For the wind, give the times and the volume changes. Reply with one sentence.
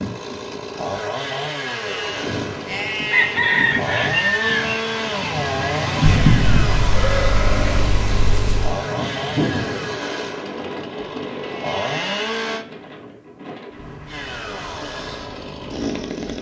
You can hear the wind from 0.0 to 16.3 s, getting louder then quieter.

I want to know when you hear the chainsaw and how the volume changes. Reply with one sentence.
The chainsaw can be heard from 0.0 to 12.7 s, at a steady volume; and briefly from 14.1 to 16.3 s.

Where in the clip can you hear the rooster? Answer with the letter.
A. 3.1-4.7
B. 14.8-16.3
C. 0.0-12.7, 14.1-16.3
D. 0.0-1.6
A.